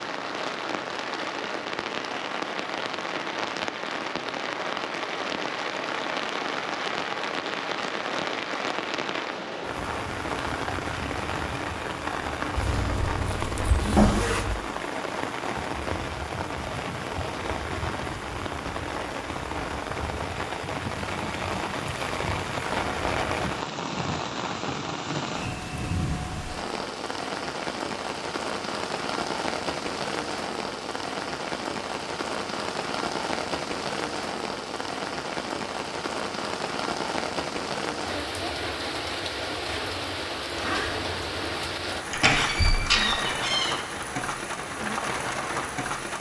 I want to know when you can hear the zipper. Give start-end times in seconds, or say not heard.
12.6-14.6, 40.5-41.7.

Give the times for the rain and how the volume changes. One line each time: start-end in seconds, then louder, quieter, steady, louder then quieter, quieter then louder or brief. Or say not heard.
0.0-46.1 steady.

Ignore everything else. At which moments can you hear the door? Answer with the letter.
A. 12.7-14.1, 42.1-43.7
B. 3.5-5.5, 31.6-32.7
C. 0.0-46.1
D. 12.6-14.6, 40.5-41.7
A.